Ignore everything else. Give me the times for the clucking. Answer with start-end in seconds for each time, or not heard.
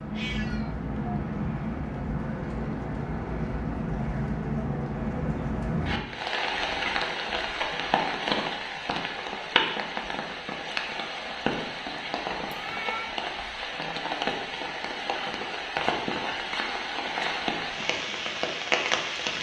not heard.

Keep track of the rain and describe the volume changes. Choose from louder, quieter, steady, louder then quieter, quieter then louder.
steady.